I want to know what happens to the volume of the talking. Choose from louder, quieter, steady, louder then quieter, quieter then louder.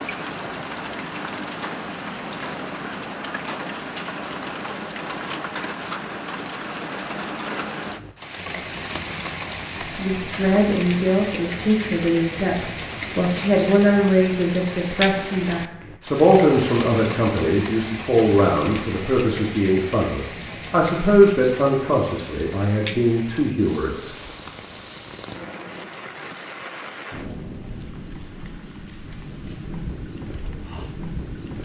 steady.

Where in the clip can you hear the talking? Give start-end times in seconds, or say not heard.
9.9-24.1.